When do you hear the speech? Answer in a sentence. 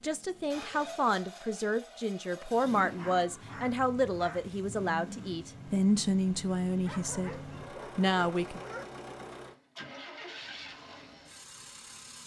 The speech can be heard from 0.0 to 7.3 s and from 8.0 to 8.6 s.